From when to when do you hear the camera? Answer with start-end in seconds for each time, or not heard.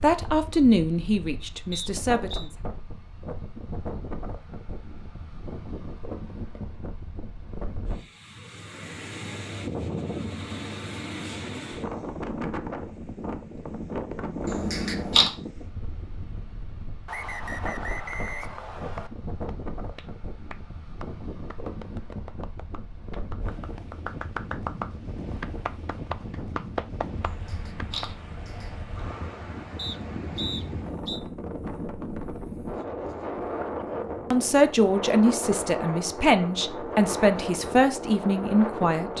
14.4-15.3, 27.2-28.9.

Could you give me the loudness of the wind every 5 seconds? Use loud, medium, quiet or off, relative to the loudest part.
medium, medium, loud, medium, medium, medium, loud, loud.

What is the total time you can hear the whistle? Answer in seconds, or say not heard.
4 s.